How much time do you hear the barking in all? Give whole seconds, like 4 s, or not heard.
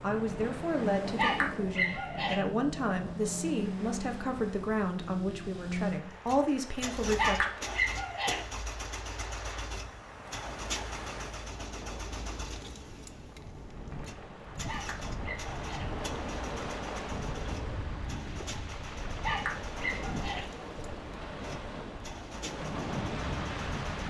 5 s.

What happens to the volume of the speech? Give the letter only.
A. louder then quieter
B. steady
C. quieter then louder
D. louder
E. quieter
B.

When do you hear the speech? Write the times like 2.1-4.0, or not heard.
0.0-7.5.